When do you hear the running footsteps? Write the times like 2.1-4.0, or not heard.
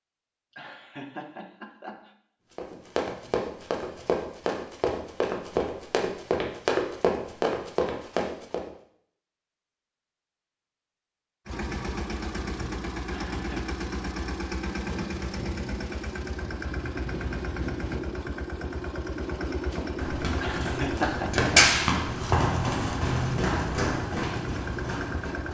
2.5-8.7, 19.7-25.5.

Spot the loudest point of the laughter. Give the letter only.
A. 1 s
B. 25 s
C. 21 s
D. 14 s
C.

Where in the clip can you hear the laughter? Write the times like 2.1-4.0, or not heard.
0.5-2.1, 13.1-13.8, 20.4-21.4.